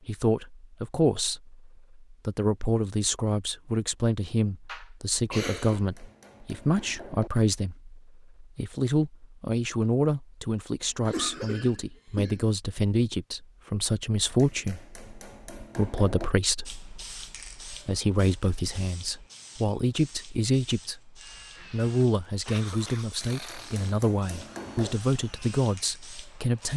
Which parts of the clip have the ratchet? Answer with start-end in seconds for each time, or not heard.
not heard.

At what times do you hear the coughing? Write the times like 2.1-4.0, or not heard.
4.7-5.8, 10.8-12.4, 21.6-23.1.